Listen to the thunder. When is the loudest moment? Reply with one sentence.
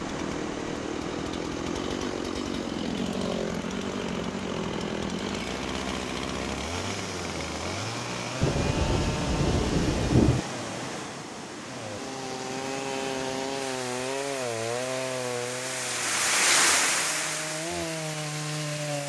The volume of the thunder peaks at 10 seconds.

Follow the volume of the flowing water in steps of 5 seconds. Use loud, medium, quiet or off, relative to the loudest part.
medium, medium, medium, loud.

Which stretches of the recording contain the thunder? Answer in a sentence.
You can hear the thunder from 8.4 to 10.4 s.